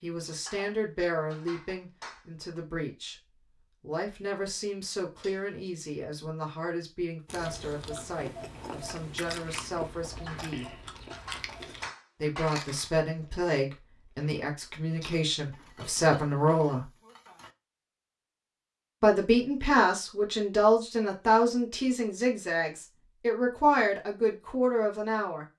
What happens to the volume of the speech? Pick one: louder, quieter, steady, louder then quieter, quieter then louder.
louder.